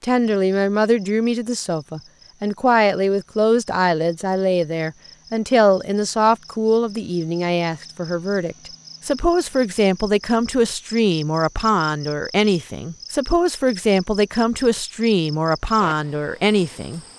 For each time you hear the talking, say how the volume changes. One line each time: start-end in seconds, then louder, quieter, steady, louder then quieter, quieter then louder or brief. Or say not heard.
0.0-17.0 steady.